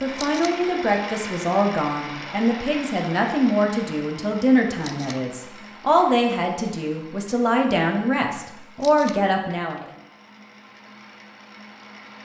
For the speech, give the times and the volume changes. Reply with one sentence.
You can hear the speech from 0.0 to 9.8 s, at a steady volume.